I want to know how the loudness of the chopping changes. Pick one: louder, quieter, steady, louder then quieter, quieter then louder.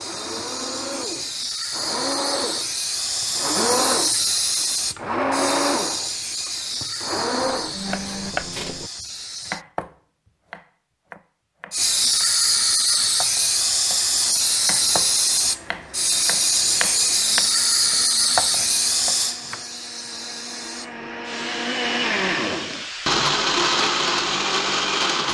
quieter then louder.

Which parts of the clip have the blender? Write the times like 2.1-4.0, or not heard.
0.0-8.3, 14.2-25.2.